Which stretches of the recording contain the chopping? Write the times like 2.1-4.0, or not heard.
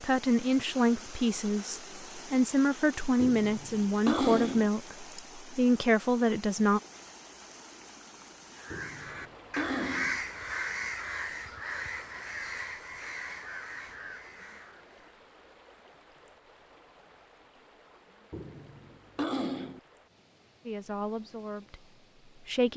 not heard.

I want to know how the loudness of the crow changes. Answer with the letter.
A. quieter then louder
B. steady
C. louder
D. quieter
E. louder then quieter
D.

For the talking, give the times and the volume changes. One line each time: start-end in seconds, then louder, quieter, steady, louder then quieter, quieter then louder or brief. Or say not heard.
0.0-6.8 steady
20.6-22.7 brief.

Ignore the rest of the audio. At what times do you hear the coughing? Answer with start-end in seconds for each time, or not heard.
3.2-4.7, 8.7-10.2, 18.3-19.8.